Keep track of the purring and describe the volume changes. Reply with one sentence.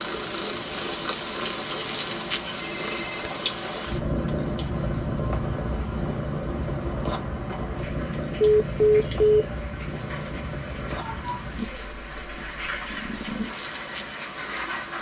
The volume of the purring goes down.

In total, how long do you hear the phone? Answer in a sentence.
The phone can be heard for 2 seconds in total.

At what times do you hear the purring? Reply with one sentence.
The purring can be heard from 0.0 to 14.9 s.